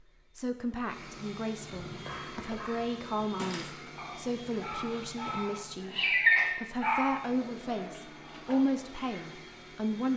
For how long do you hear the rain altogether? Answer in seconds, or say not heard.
not heard.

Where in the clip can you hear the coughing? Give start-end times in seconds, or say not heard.
not heard.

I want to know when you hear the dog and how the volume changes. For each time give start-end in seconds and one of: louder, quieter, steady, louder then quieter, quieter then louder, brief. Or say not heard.
1.7-8.6 louder then quieter.